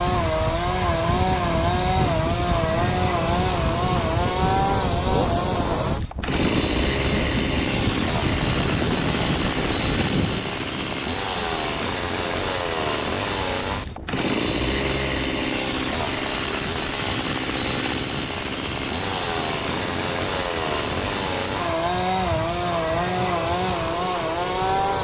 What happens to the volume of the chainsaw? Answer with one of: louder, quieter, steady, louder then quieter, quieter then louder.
steady.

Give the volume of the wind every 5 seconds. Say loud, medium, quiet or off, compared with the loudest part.
loud, loud, medium, medium, medium.